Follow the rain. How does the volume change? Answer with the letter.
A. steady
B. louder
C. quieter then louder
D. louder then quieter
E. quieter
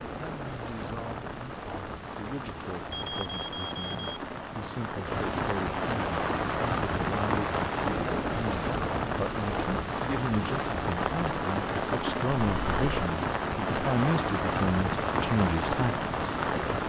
B.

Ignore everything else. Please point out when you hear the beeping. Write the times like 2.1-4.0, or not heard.
2.4-4.2, 12.2-13.0.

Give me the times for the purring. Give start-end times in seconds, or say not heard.
not heard.